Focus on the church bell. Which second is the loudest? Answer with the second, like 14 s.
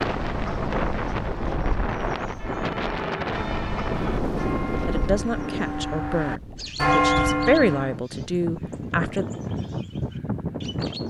7 s.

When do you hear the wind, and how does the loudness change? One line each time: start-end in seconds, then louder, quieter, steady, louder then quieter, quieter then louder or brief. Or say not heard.
0.0-11.0 quieter then louder.